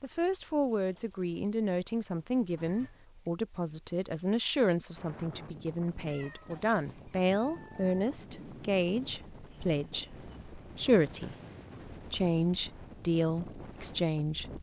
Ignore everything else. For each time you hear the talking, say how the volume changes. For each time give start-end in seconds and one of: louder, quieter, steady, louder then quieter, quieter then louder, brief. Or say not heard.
0.0-14.5 steady.